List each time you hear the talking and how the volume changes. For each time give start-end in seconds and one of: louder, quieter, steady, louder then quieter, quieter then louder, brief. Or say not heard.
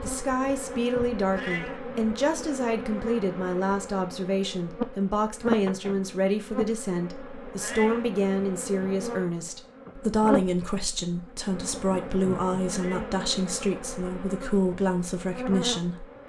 0.0-16.2 steady.